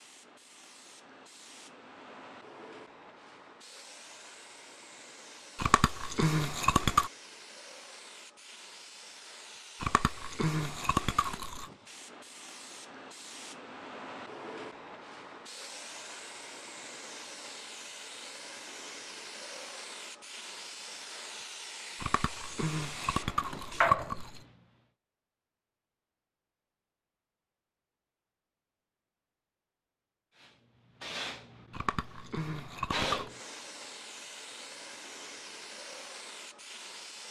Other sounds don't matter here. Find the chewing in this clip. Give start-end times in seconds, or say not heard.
5.5-7.1, 9.8-11.7, 21.9-24.4, 31.7-33.3.